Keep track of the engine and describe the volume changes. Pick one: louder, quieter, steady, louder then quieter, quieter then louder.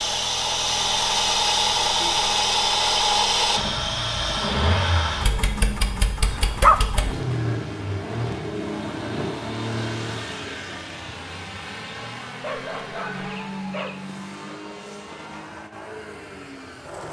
quieter.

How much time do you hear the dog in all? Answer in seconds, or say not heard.
2 s.